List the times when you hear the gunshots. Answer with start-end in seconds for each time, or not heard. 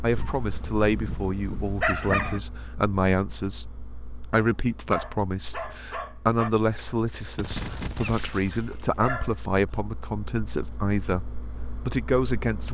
7.3-9.0.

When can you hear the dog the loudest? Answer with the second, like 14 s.
2 s.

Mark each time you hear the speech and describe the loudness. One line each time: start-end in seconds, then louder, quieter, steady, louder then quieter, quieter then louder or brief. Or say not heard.
0.0-12.7 steady.